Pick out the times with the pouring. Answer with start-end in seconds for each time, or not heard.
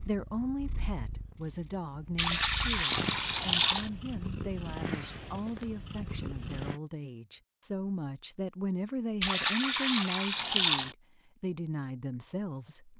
2.1-3.9, 9.2-10.9.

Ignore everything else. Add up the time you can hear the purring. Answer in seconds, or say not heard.
7 s.